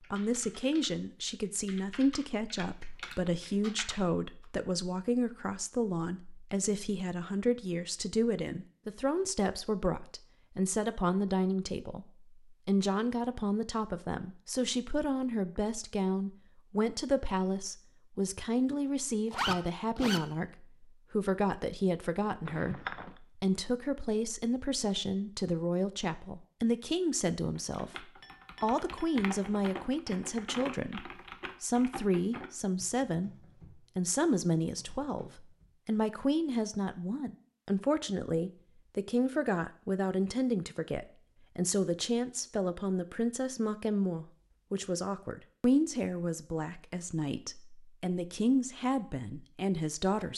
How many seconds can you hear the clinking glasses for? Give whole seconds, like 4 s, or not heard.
2 s.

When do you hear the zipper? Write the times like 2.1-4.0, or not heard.
19.3-20.2.